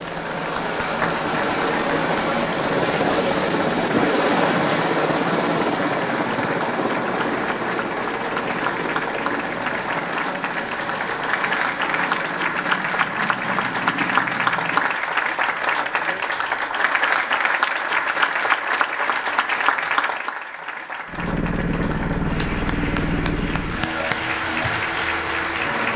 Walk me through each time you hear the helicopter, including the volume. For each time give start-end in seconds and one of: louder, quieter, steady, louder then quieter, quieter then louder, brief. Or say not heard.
0.0-15.0 quieter
21.1-25.9 quieter.